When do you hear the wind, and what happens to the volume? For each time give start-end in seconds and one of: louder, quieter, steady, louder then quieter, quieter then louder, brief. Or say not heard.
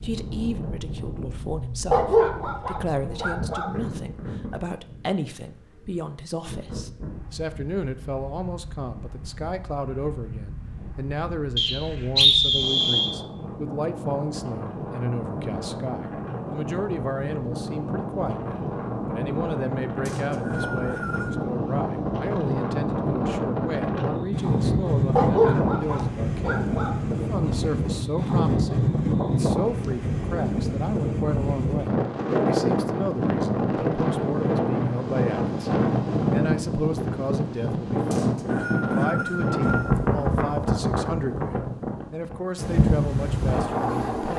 0.0-44.3 louder.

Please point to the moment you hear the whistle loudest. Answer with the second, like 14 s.
12 s.